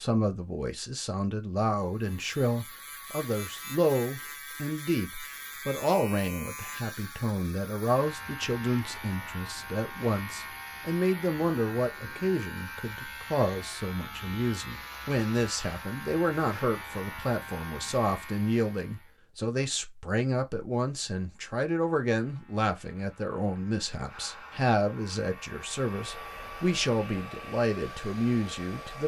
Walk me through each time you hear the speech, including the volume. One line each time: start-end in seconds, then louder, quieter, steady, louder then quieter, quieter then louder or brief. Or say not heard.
0.0-29.0 steady.